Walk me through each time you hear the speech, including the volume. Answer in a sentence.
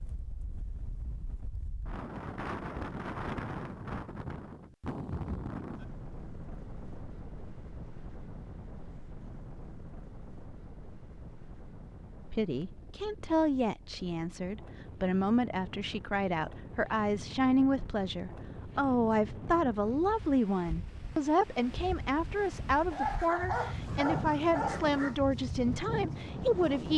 You can hear the speech from 12.3 to 26.9 s, at a steady volume.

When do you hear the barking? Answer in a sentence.
The barking can be heard from 22.9 to 25.1 s.